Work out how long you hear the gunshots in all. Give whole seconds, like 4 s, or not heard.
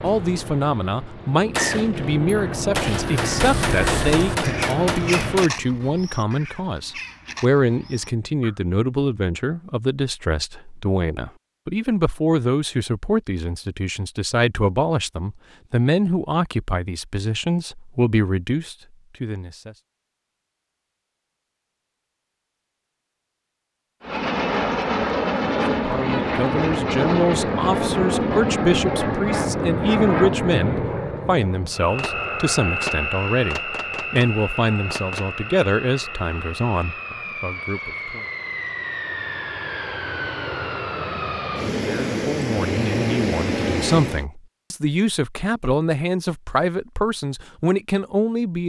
7 s.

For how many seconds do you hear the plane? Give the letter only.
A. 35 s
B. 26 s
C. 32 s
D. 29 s
B.